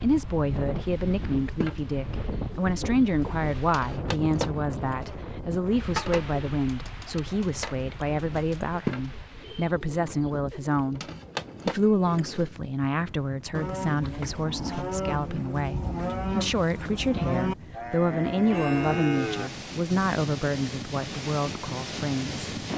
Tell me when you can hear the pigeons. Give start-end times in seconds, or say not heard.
1.4-12.4.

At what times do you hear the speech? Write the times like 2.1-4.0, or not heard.
0.0-11.0, 11.7-22.5.